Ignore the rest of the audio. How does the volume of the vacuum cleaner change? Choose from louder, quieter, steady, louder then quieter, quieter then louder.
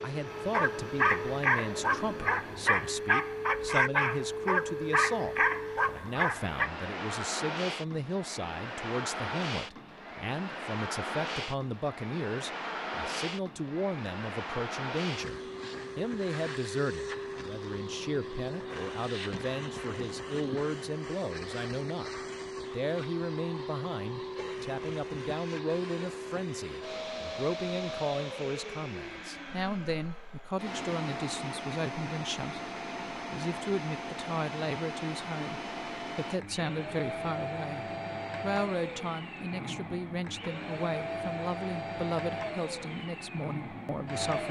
steady.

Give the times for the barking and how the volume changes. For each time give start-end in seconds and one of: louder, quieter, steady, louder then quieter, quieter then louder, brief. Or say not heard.
0.2-6.7 steady.